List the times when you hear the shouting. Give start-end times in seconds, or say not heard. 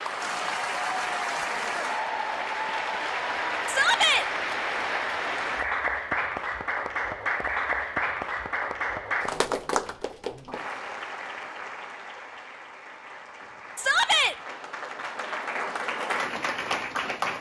3.6-4.2, 13.8-14.3.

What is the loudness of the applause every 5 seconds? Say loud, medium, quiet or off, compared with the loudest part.
loud, loud, medium, loud.